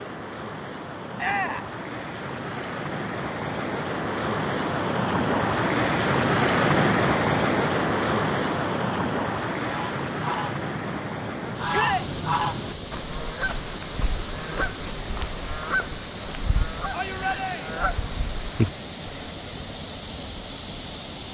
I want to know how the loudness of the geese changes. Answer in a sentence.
The loudness of the geese goes up, then down.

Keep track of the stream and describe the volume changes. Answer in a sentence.
The volume of the stream goes up, then down.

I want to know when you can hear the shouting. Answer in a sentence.
You can hear the shouting from 1.1 to 1.7 s, from 11.7 to 12.1 s and from 16.9 to 17.8 s.